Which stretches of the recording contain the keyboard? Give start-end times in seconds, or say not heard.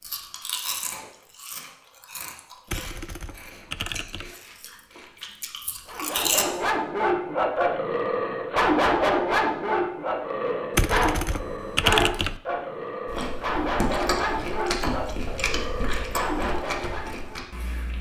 2.6-4.3, 10.7-12.4.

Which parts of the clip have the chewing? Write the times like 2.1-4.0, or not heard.
0.0-6.5, 13.1-17.9.